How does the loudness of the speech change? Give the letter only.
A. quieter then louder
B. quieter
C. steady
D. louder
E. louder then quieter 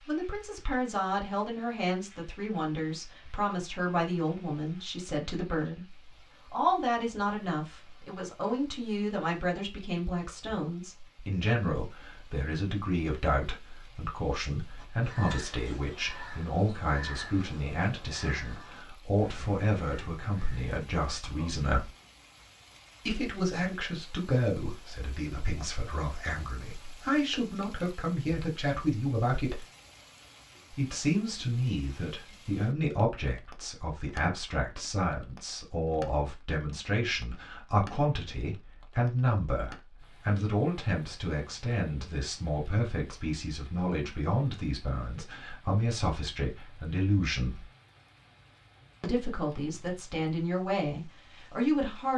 C.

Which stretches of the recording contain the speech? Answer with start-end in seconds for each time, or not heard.
0.1-21.9, 23.1-29.6, 30.8-47.7, 49.0-52.1.